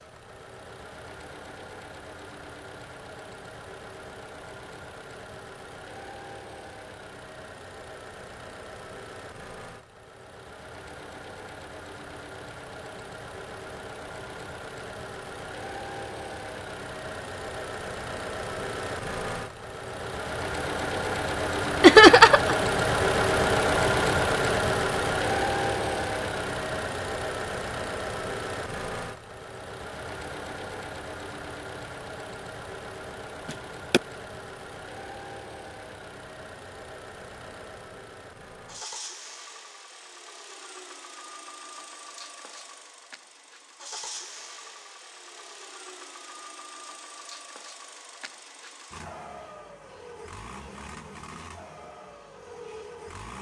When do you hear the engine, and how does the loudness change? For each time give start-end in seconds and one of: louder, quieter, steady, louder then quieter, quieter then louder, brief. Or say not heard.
0.0-53.3 louder then quieter.